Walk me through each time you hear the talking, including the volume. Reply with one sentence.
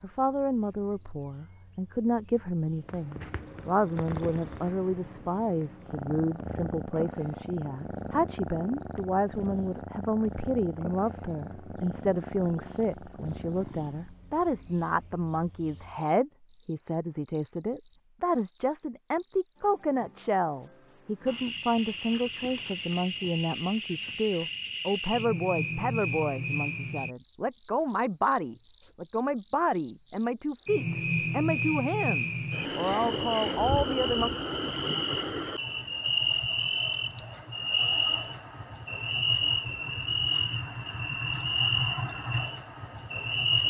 You can hear the talking from 0.0 to 34.3 s, at a steady volume.